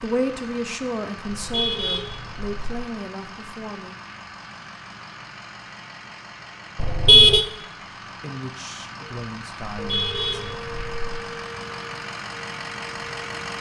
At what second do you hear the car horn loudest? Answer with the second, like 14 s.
7 s.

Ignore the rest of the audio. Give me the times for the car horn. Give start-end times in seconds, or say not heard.
1.2-2.8, 6.8-7.5, 9.8-11.2.